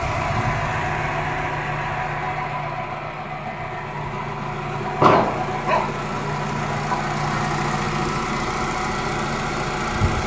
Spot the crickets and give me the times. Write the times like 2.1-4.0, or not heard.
not heard.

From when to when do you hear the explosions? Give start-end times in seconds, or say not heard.
5.0-5.4.